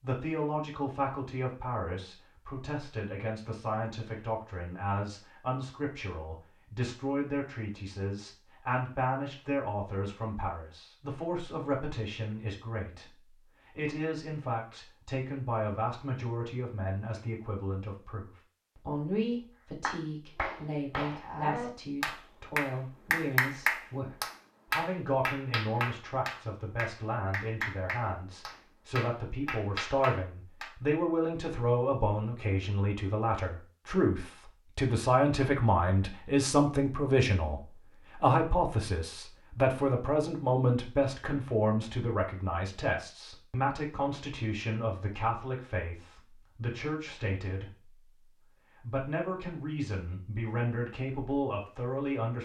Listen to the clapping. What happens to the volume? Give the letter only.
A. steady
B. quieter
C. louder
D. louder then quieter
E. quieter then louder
D.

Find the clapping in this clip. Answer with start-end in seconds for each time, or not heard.
19.8-30.7.